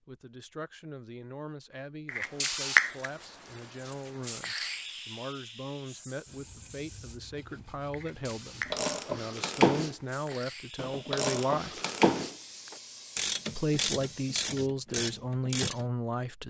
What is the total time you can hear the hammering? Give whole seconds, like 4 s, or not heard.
not heard.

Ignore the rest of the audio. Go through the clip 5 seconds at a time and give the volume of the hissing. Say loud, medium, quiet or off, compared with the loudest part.
loud, quiet, quiet, off.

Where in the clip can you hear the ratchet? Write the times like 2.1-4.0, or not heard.
8.7-15.8.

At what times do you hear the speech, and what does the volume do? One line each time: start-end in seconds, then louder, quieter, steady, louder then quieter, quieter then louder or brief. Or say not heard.
0.1-11.8 louder
13.6-16.4 brief.